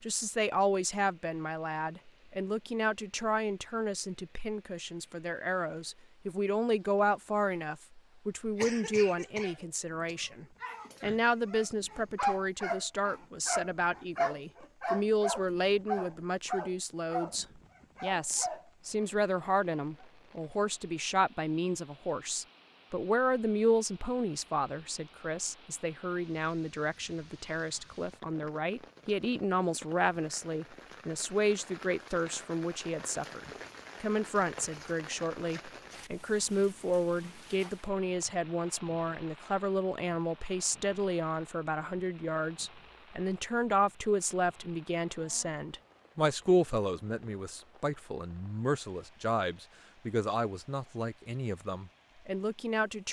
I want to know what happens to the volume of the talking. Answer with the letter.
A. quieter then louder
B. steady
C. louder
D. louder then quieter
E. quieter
B.